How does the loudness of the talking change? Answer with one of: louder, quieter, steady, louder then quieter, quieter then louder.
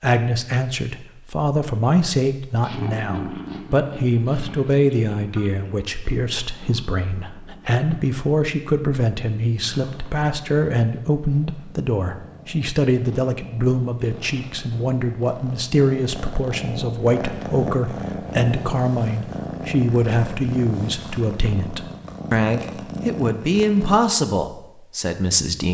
steady.